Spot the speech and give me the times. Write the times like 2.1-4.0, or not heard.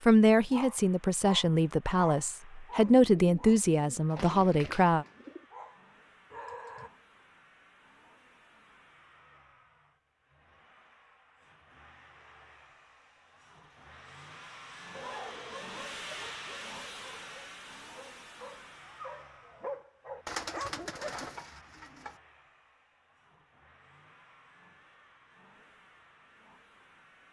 0.1-5.0.